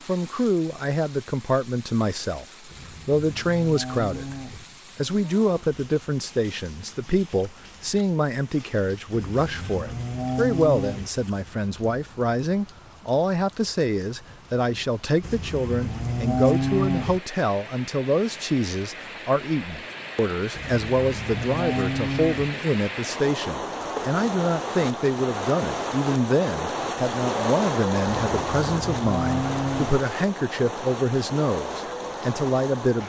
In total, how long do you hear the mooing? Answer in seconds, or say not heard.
10 s.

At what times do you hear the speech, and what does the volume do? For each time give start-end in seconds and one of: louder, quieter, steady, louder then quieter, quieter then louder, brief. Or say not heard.
0.1-2.5 brief
3.0-4.3 brief
5.0-33.0 steady.